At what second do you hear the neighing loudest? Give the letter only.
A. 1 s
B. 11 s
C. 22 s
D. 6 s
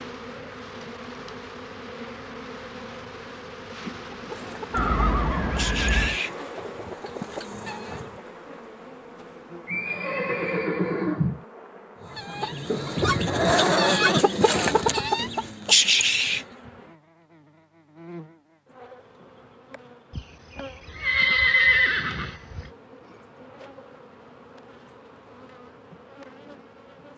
C.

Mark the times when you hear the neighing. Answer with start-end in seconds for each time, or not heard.
4.7-6.2, 9.7-11.4, 20.1-22.7.